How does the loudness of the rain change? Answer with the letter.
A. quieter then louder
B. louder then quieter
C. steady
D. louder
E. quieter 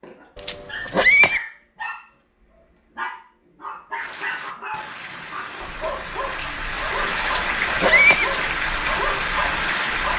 D.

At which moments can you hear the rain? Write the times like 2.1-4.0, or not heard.
4.0-10.1.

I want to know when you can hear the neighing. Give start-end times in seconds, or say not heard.
0.3-1.4, 7.2-8.2.